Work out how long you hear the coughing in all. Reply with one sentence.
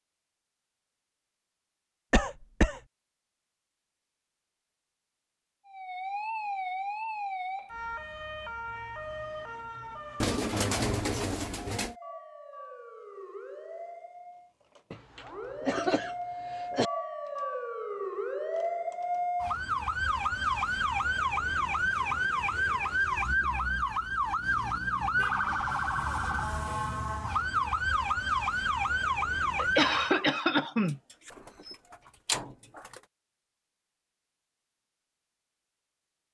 You can hear the coughing for 4 seconds altogether.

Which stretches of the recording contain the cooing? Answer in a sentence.
You can hear the cooing from 10.2 to 11.9 s and from 30.9 to 33.0 s.